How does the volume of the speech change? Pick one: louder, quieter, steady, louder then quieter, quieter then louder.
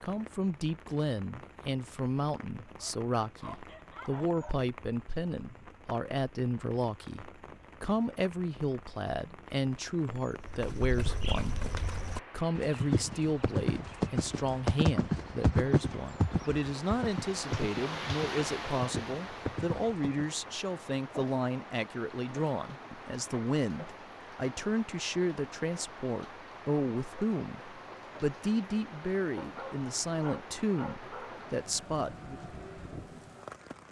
steady.